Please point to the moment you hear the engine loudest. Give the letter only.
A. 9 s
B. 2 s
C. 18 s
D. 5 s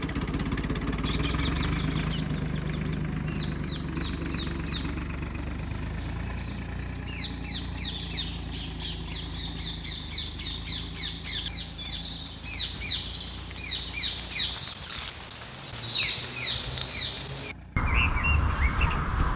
B.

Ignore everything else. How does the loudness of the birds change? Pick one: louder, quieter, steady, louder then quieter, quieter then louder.
louder.